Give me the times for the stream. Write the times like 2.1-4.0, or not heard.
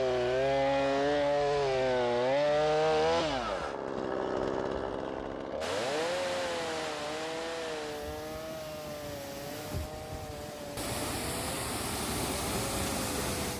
5.6-13.5.